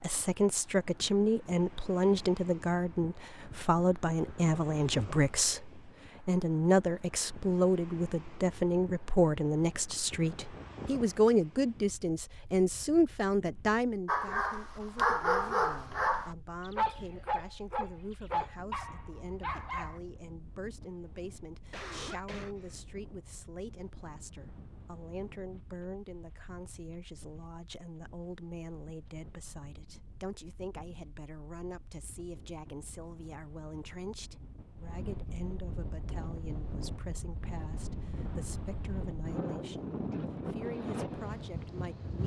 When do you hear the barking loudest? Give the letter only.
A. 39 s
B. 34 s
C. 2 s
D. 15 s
D.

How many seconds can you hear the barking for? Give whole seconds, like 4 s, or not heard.
6 s.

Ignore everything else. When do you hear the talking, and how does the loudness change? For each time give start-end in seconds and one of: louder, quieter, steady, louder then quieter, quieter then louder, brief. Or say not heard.
0.0-42.2 quieter.